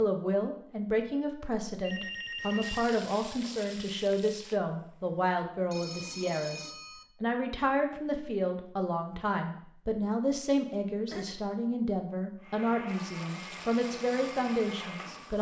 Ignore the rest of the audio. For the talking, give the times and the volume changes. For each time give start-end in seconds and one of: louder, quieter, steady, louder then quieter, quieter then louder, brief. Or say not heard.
0.0-15.3 steady.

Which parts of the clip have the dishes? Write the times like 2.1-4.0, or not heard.
not heard.